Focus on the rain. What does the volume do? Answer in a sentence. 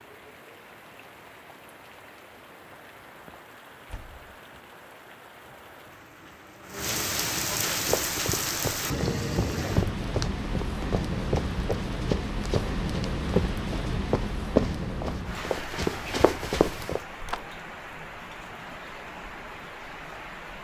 The loudness of the rain goes up, then down.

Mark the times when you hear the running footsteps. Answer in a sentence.
You can hear the running footsteps from 7.8 to 17.0 s.